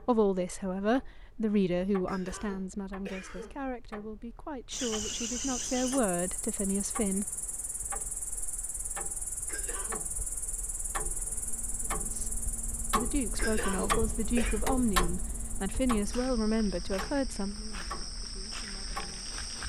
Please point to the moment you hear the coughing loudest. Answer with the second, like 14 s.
14 s.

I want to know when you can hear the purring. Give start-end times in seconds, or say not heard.
not heard.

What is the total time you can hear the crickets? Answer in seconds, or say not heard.
15 s.